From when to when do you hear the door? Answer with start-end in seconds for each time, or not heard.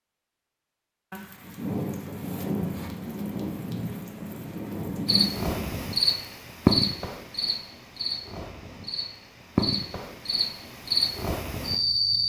not heard.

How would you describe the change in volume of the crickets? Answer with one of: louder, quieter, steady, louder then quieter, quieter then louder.
quieter then louder.